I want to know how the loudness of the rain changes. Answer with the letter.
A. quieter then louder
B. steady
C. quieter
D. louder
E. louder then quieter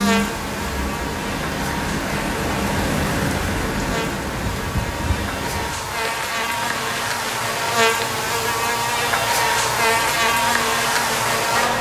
C.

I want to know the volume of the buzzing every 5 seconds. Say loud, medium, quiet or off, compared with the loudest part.
medium, loud, loud.